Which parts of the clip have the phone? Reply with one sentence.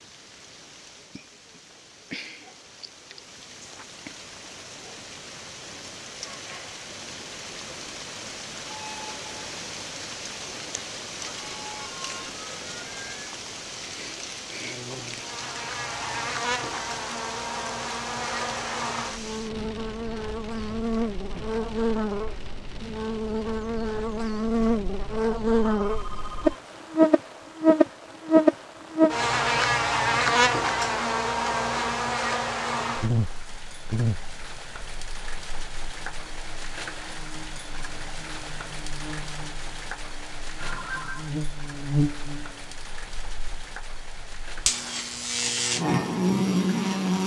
You can hear the phone from 11.3 to 13.3 s, from 25.8 to 26.6 s and from 40.5 to 41.3 s.